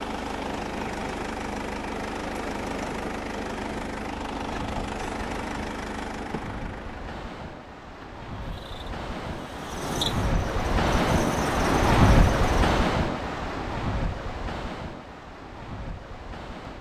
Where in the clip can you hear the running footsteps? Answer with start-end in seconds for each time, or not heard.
not heard.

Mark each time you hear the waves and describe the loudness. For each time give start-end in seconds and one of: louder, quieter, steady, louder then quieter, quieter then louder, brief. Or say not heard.
0.0-16.7 louder then quieter.